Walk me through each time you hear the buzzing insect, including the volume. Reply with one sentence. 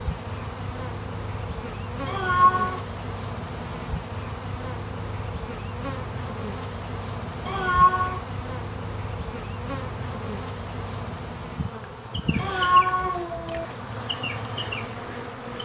You can hear the buzzing insect from 0.0 to 15.6 s, at a steady volume.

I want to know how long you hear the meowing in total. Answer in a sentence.
The meowing can be heard for 3 seconds in total.